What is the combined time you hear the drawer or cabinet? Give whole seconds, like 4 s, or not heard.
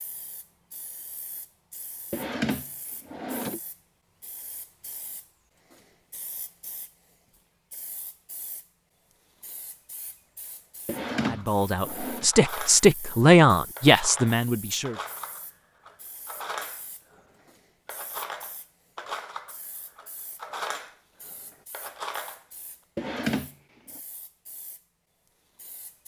4 s.